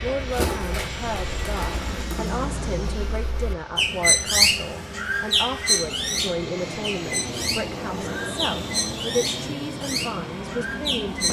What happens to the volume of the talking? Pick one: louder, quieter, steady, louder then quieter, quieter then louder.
steady.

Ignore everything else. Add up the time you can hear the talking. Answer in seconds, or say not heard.
11 s.